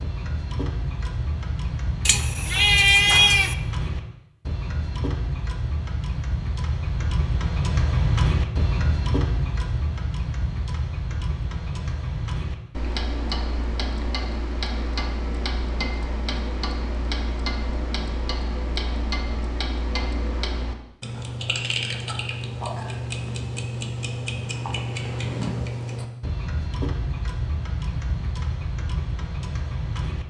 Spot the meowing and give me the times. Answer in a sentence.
The meowing can be heard from 2.0 to 3.5 s.